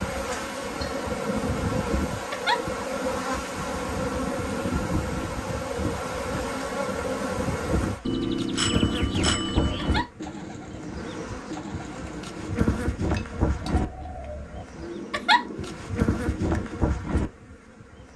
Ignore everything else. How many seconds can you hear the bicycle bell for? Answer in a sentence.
You can hear the bicycle bell for 2 seconds altogether.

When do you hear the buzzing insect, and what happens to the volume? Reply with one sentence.
You can hear the buzzing insect from 0.0 to 18.1 s, at a steady volume.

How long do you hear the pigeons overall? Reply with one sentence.
The pigeons can be heard for 8 seconds in total.